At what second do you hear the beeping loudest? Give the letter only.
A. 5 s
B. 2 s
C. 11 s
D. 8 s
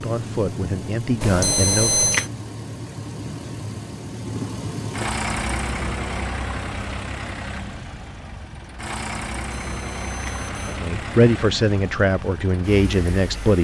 B.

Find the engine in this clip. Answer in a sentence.
You can hear the engine from 0.0 to 13.5 s.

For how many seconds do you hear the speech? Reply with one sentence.
The speech can be heard for 5 seconds in total.